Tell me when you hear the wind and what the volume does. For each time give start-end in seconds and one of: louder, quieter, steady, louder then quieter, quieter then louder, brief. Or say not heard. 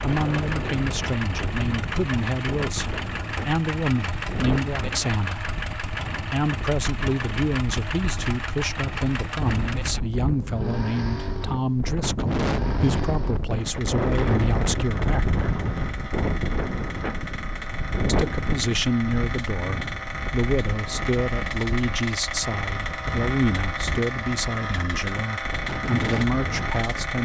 0.0-27.2 louder then quieter.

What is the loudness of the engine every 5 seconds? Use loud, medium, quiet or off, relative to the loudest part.
loud, loud, medium, medium, loud, loud.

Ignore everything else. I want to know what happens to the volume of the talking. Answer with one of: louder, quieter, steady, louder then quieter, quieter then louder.
steady.